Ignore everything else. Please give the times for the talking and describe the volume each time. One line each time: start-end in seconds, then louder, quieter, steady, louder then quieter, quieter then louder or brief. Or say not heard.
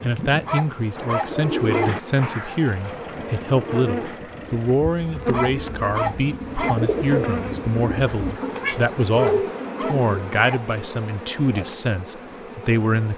0.0-13.1 steady.